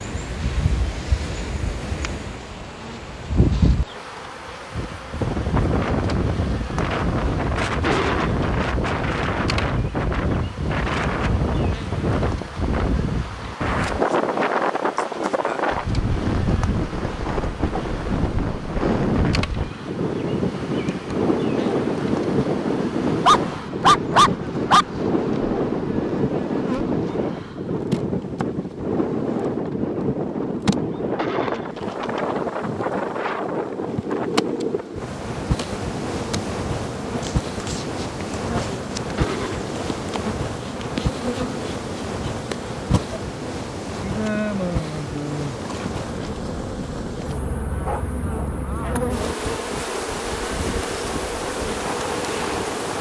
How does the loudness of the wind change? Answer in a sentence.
The volume of the wind goes down.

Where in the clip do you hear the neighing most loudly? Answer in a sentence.
The volume of the neighing peaks at 8 seconds.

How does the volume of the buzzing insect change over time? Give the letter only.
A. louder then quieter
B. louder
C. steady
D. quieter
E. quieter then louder
B.